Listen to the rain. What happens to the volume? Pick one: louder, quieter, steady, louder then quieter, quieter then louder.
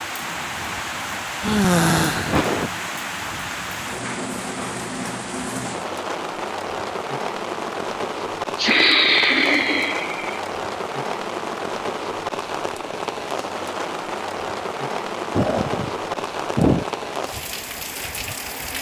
steady.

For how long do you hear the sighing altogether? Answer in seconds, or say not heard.
5 s.